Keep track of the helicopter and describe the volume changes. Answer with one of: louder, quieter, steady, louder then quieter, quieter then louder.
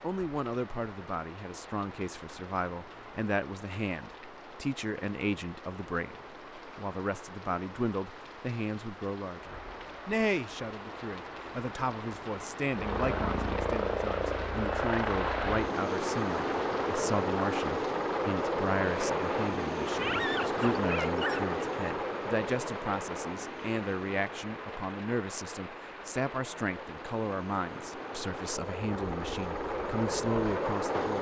quieter then louder.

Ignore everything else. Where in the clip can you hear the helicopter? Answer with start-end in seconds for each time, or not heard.
12.7-31.1.